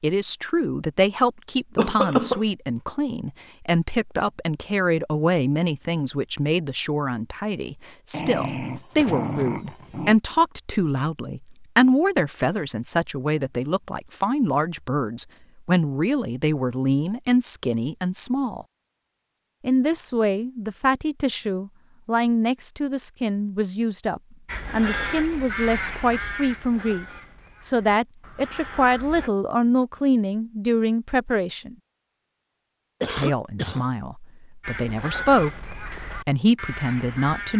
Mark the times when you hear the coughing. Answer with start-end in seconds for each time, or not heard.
1.8-2.4, 33.0-33.9.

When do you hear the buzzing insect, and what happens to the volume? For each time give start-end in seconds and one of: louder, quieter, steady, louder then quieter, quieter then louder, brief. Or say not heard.
not heard.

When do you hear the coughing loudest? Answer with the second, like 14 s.
2 s.